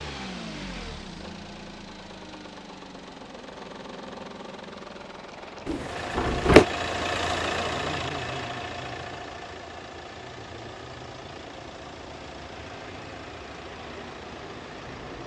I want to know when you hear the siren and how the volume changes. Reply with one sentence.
You can't hear the siren here.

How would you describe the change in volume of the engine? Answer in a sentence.
The loudness of the engine goes up, then down.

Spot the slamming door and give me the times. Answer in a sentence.
The slamming door can be heard from 5.7 to 6.7 s.